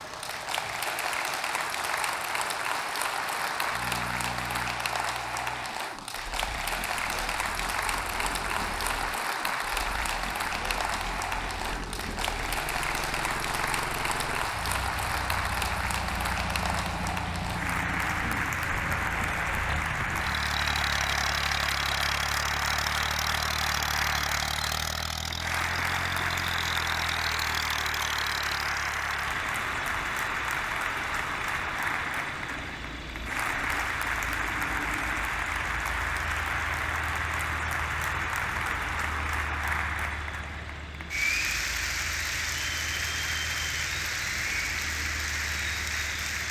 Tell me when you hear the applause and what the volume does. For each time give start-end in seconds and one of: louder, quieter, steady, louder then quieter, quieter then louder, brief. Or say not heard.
0.0-46.4 steady.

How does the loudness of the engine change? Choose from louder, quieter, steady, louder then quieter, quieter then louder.
louder then quieter.